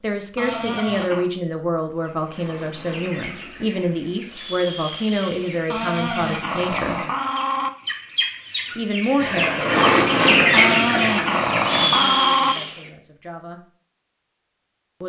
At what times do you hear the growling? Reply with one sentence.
You can hear the growling from 0.3 to 1.2 s, from 5.7 to 7.7 s and from 10.5 to 12.6 s.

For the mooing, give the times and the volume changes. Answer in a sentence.
You can't hear the mooing here.